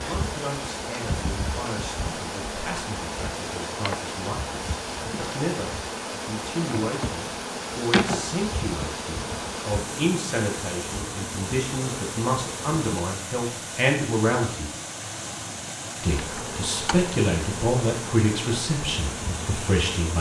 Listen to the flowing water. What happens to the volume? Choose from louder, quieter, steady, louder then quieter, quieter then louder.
steady.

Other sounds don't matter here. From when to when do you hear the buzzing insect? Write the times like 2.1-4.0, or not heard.
0.0-12.9, 16.1-20.1.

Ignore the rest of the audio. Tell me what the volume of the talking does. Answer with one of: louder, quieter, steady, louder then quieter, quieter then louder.
louder.